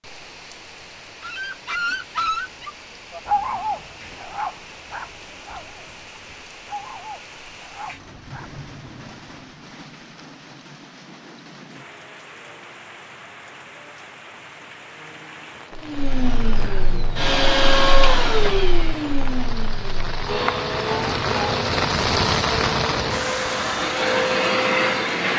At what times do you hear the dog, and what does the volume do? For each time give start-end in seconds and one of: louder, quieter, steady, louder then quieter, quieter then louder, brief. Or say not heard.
1.2-8.6 quieter.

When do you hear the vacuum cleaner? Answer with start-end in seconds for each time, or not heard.
15.8-25.3.